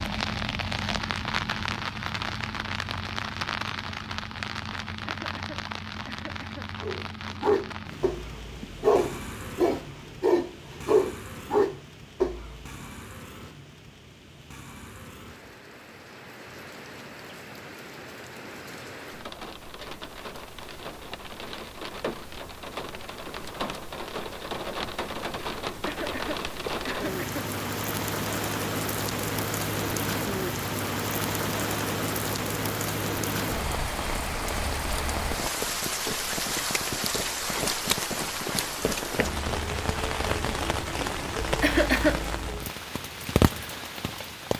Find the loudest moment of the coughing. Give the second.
42 s.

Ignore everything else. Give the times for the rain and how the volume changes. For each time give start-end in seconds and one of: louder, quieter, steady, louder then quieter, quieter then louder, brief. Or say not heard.
0.0-44.5 quieter then louder.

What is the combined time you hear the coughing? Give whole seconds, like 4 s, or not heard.
4 s.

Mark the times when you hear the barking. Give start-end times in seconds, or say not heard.
6.8-12.7.